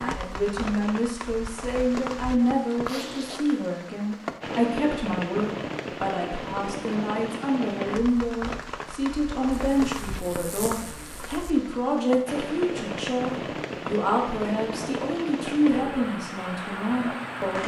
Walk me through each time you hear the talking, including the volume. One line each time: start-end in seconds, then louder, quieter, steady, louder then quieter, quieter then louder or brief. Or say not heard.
0.0-17.6 steady.